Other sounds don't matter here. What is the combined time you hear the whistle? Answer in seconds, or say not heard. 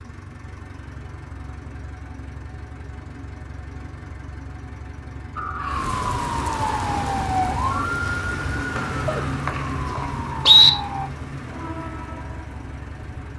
2 s.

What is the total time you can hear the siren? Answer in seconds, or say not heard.
6 s.